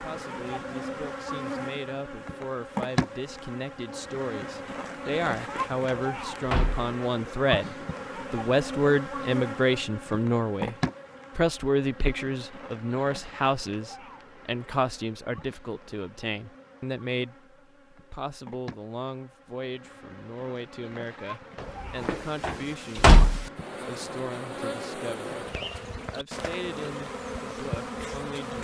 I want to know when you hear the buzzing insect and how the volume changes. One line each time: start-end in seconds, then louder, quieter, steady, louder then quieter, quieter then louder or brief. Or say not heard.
0.0-28.5 quieter then louder.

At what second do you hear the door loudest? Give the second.
23 s.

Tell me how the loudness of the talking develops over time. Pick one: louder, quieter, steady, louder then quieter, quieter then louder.
louder then quieter.